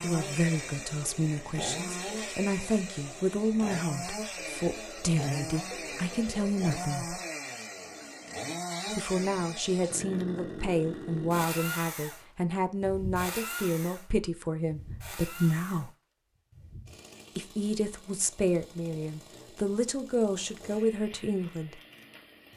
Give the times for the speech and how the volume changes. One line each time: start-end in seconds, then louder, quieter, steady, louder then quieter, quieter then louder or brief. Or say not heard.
0.0-7.2 steady
8.9-15.9 steady
17.4-21.8 steady.